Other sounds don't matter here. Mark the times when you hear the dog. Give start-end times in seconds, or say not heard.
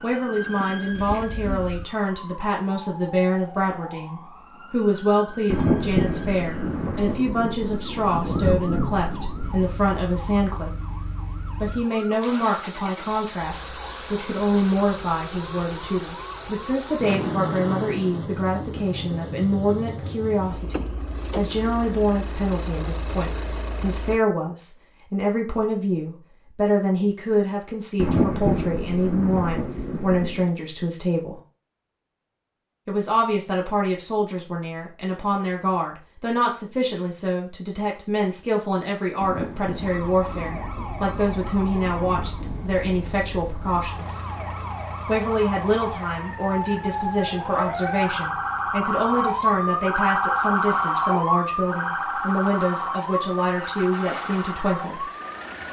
not heard.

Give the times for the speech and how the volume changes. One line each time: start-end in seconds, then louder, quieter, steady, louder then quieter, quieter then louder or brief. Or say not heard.
0.0-31.4 steady
32.9-44.2 steady
45.0-55.1 steady.